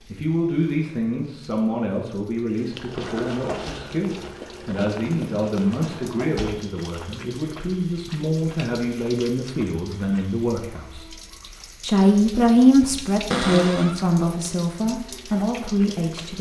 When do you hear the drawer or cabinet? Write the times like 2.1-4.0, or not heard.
2.9-3.8, 5.7-6.5, 13.3-13.9.